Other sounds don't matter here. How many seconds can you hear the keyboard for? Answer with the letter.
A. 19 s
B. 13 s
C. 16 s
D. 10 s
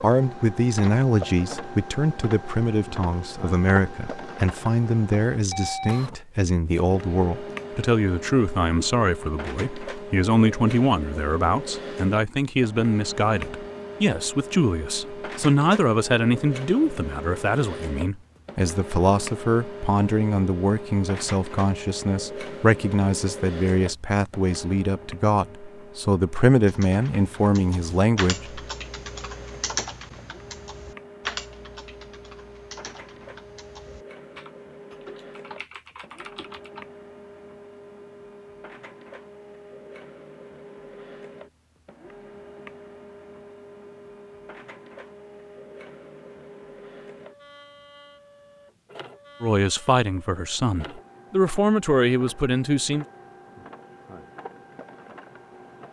D.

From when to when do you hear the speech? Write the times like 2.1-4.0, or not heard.
0.0-28.6, 49.4-53.0.